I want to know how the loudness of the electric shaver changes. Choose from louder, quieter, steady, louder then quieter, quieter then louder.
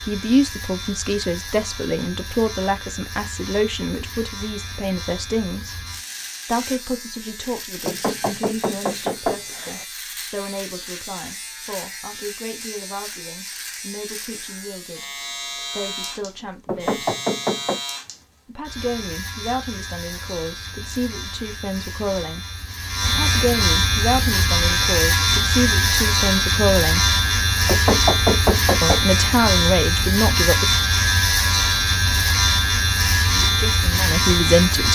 louder.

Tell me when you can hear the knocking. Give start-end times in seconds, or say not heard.
7.8-9.8, 16.6-17.8, 27.6-29.1.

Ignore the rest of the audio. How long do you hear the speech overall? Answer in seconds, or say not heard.
28 s.